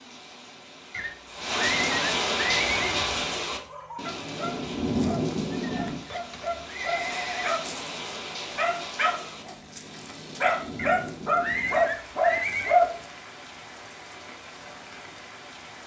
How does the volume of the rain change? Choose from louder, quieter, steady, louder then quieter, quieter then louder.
quieter.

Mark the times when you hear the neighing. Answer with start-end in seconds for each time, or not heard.
0.9-2.8, 5.7-7.5, 10.8-12.8.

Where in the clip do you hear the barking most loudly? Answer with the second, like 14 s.
13 s.